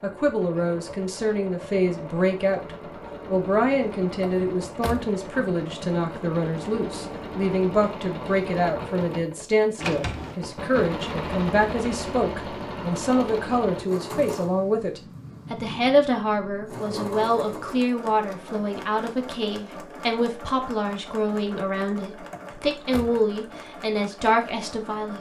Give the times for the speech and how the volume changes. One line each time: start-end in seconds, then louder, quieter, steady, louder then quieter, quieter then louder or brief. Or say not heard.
0.0-25.1 steady.